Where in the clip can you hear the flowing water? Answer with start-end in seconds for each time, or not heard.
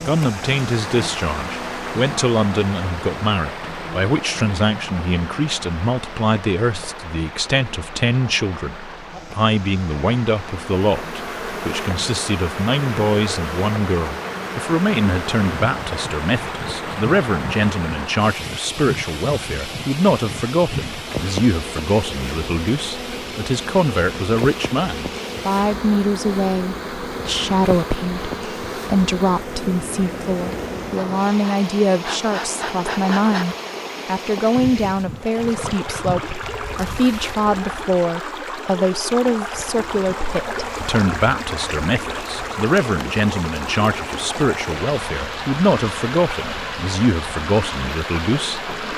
0.0-48.9.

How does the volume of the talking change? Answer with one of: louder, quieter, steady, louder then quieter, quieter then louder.
steady.